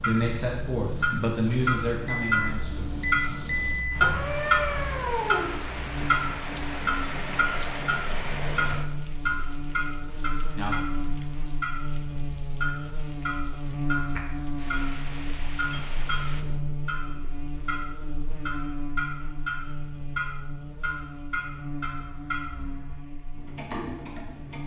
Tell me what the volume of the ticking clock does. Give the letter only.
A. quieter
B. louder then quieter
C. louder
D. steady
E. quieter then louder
A.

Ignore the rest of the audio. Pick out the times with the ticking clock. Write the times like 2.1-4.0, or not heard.
0.0-24.6.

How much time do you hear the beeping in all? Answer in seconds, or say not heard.
3 s.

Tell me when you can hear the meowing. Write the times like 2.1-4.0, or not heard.
4.0-5.5.